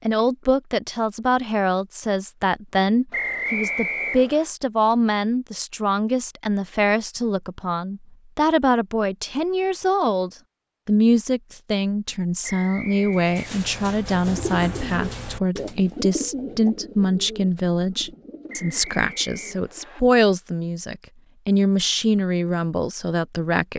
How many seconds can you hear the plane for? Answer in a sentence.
The plane can't be heard in this clip.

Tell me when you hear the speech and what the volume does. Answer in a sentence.
You can hear the speech from 0.1 to 23.7 s, at a steady volume.